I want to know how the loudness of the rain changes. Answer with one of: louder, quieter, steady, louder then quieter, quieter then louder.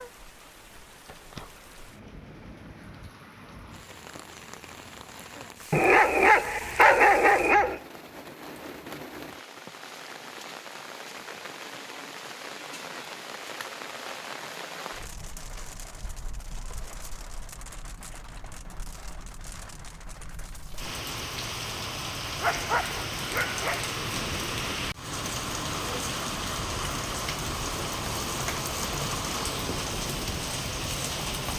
louder.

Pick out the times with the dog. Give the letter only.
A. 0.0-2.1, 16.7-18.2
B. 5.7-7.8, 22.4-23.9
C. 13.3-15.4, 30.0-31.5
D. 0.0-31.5
B.